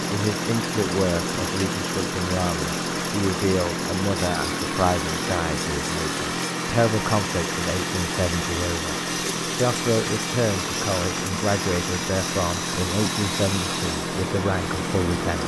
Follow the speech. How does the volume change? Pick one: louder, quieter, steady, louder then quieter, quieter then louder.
steady.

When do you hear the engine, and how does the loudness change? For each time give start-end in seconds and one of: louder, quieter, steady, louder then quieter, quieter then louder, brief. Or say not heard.
0.0-15.4 steady.